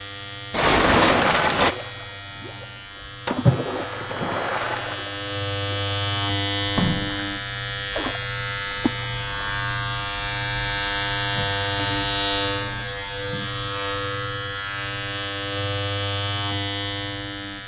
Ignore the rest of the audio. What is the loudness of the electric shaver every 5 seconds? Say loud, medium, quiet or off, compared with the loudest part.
medium, loud, loud, loud.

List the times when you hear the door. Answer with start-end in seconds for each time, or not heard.
0.5-1.8.